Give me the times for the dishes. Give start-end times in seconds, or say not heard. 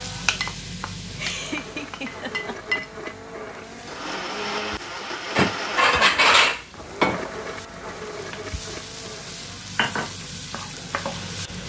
5.3-7.2.